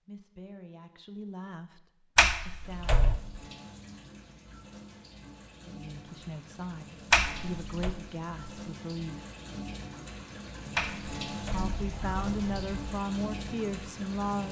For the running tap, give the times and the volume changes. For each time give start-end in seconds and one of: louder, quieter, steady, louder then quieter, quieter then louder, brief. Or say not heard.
2.6-14.4 louder.